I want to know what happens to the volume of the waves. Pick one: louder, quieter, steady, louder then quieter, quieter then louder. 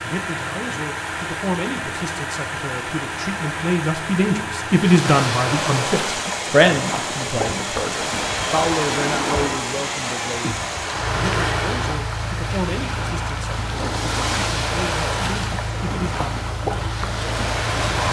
steady.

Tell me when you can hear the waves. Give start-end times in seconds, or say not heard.
4.7-18.0.